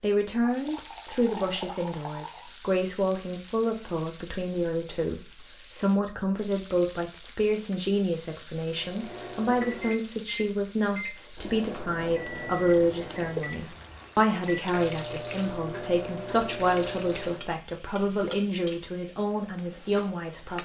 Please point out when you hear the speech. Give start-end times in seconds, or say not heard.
0.0-20.6.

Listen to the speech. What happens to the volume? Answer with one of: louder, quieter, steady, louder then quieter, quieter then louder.
steady.